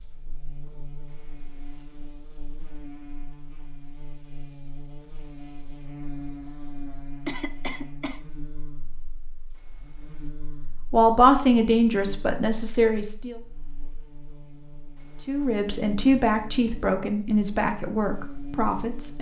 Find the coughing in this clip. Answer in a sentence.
The coughing can be heard from 7.2 to 8.2 s.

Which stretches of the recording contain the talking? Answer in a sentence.
You can hear the talking from 10.9 to 13.3 s and from 15.2 to 19.1 s.